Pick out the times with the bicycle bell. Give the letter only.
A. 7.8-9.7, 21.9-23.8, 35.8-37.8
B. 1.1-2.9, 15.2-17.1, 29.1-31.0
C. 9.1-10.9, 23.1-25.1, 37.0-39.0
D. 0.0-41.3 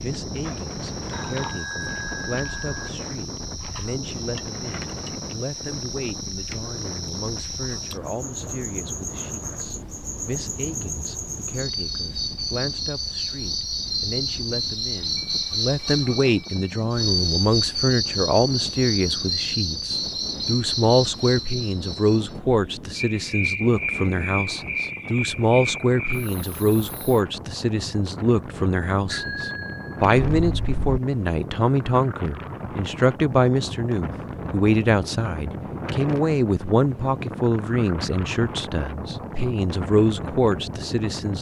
B.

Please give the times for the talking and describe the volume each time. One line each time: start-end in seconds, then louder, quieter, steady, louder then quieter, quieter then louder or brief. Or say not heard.
0.0-41.3 louder.